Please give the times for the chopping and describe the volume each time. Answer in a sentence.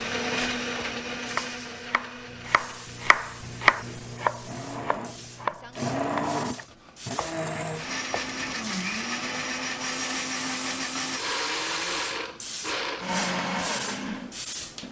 You can hear the chopping from 1.2 to 8.3 s, getting louder then quieter.